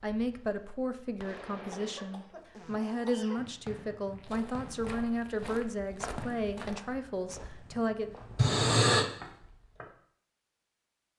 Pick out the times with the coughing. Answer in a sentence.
The coughing can be heard from 1.6 to 3.4 s and from 8.3 to 9.1 s.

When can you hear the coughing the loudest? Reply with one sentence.
The loudest moment of the coughing is at 9 seconds.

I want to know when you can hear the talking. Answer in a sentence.
The talking can be heard from 0.0 to 8.2 s.